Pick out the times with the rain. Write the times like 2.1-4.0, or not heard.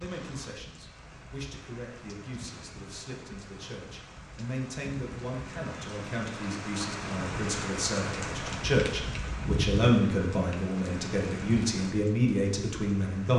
0.0-13.3.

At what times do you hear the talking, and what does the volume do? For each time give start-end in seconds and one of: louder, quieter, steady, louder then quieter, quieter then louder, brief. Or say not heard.
0.0-13.3 louder.